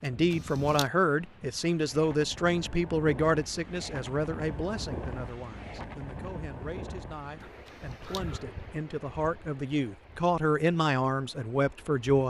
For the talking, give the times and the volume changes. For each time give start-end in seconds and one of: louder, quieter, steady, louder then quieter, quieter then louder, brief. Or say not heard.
0.0-12.2 quieter then louder.